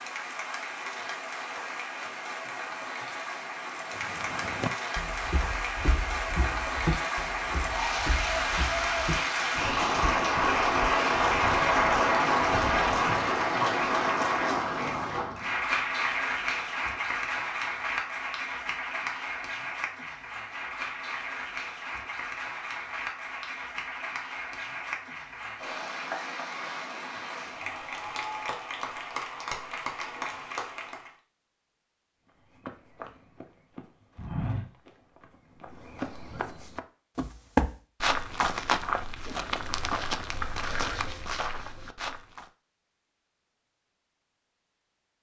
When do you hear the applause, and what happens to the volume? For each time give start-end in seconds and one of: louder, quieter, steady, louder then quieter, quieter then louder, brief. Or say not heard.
0.0-31.1 louder then quieter.